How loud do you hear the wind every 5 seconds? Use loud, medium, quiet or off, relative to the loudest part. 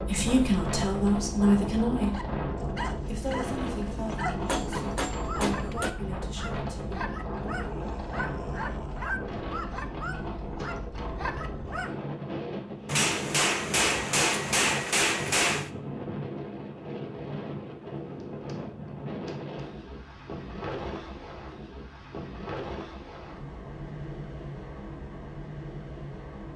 loud, loud, loud, loud, medium, medium.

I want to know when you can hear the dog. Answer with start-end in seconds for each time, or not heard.
2.1-11.9.